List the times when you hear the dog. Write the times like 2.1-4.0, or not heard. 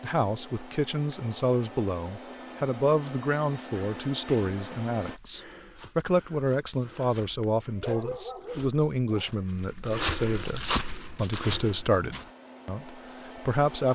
7.7-9.4.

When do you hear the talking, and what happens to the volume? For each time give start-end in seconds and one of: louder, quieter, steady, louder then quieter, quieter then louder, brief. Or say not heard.
0.0-13.9 steady.